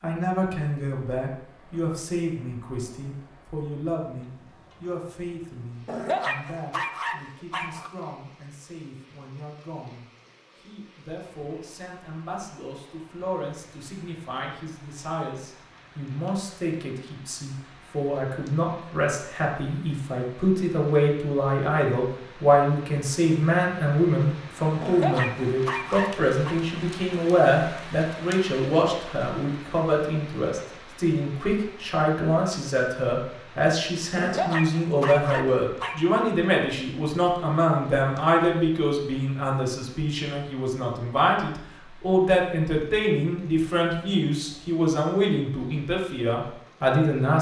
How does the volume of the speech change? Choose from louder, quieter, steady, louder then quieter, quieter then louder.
louder.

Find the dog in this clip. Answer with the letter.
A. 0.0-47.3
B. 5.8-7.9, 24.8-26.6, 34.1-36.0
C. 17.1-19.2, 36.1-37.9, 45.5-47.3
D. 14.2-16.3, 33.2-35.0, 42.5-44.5
B.